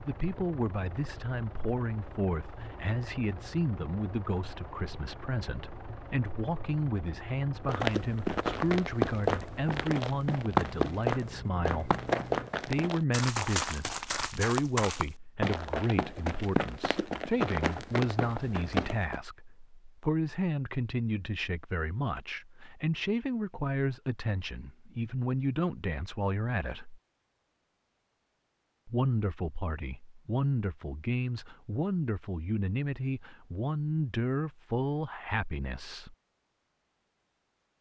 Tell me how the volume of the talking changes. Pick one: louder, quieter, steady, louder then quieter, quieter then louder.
steady.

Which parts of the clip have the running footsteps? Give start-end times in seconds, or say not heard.
7.7-19.1.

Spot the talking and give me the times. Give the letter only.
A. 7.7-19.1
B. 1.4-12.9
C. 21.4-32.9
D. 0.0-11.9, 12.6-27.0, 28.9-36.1
D.